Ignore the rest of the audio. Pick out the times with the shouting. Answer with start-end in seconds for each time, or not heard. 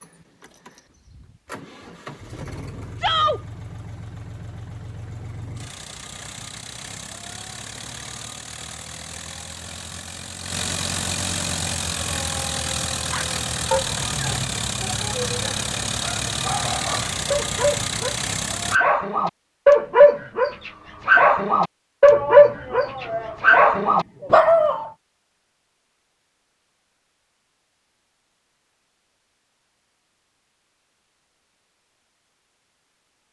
3.0-3.4, 22.1-24.4.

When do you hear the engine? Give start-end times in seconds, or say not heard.
0.0-18.8.